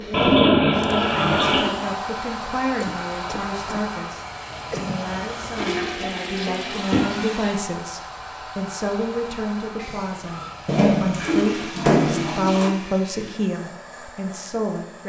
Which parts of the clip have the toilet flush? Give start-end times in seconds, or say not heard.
0.1-1.6, 5.5-7.5, 10.7-12.7.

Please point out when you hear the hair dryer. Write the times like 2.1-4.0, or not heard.
0.0-15.0.